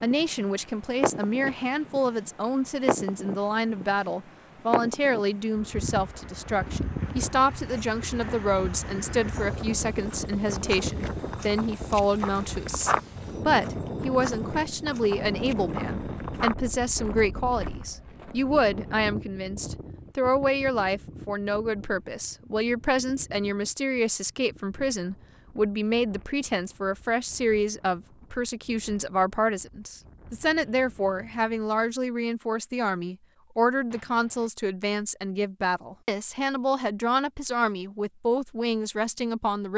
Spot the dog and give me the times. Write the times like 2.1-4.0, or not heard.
not heard.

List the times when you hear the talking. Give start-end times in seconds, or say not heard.
0.0-39.7.